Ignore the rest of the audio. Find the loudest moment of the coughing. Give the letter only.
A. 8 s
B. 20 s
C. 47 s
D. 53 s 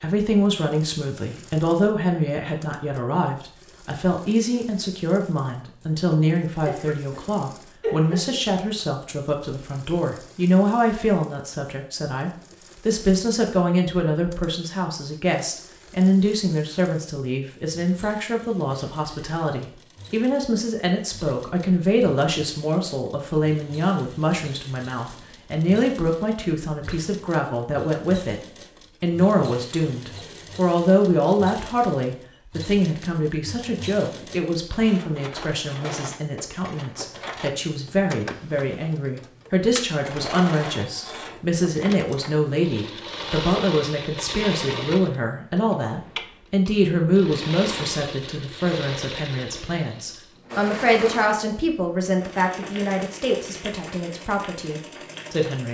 A.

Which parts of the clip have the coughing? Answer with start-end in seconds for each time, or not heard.
6.7-8.4.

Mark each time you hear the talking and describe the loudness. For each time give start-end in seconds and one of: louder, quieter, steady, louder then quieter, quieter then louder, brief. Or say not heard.
0.0-55.6 steady.